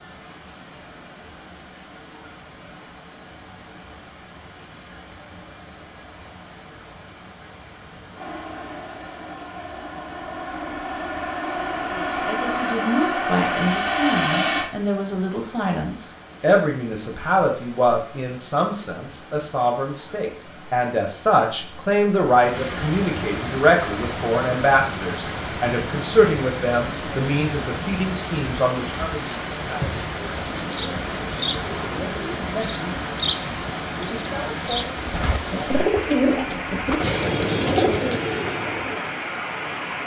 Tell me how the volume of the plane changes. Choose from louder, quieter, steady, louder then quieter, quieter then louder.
louder.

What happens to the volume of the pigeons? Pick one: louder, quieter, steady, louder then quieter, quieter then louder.
louder.